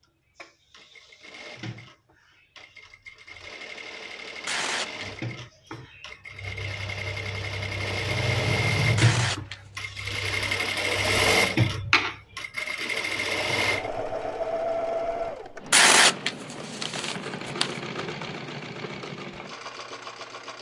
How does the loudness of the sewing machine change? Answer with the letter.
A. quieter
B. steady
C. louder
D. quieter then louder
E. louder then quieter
E.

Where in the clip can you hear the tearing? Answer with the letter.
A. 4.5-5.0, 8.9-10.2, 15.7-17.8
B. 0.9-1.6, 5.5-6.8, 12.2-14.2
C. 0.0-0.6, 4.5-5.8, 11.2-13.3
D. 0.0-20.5
A.